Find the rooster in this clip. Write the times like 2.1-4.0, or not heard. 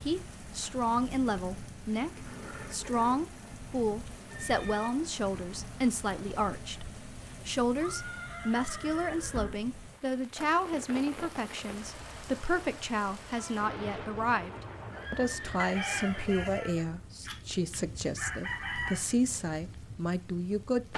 15.6-19.1.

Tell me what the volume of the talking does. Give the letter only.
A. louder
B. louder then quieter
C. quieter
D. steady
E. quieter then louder
D.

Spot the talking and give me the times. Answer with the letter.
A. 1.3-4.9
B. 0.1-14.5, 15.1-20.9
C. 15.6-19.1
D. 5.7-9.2
B.